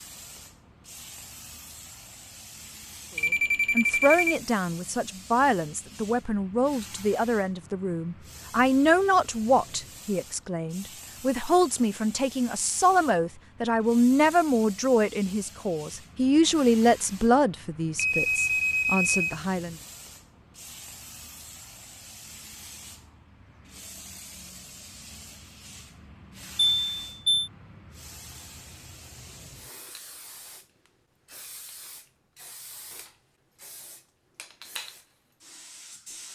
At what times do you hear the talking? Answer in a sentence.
The talking can be heard from 3.8 to 19.8 s.